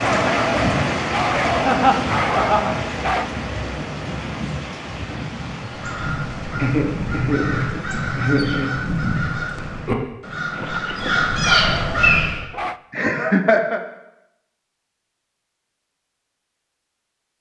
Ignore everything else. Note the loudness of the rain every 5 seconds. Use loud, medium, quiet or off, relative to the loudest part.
loud, medium, off, off.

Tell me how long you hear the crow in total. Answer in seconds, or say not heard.
7 s.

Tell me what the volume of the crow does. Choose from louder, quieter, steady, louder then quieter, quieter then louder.
louder.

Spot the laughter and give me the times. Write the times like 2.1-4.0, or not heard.
1.6-2.9, 6.5-8.9, 12.9-13.8.